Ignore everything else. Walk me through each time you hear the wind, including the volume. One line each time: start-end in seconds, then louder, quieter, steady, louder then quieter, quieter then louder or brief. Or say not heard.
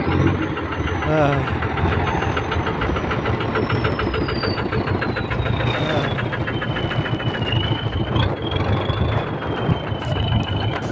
1.7-10.8 steady.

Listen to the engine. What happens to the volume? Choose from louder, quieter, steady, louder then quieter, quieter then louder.
steady.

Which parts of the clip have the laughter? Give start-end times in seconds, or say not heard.
1.1-1.6, 5.8-6.2.